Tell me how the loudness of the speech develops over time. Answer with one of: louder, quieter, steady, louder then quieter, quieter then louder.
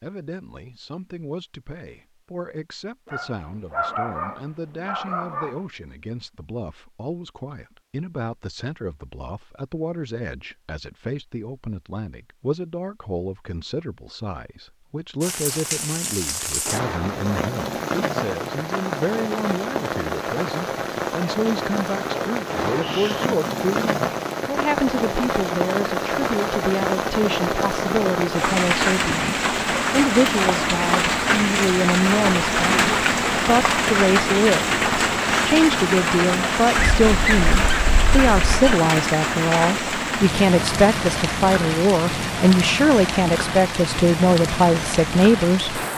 louder.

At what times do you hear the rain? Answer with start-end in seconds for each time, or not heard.
15.2-45.9.